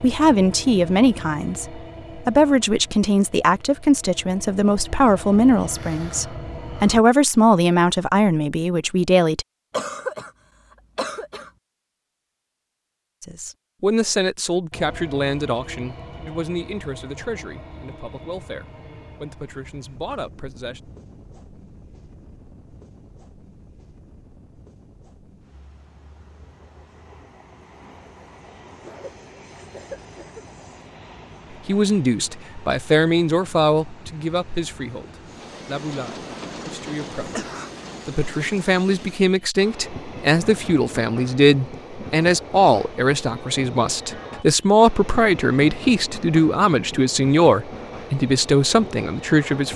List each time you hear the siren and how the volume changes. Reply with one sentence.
The siren can't be heard in this clip.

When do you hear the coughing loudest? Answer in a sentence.
The loudest moment of the coughing is at 10 seconds.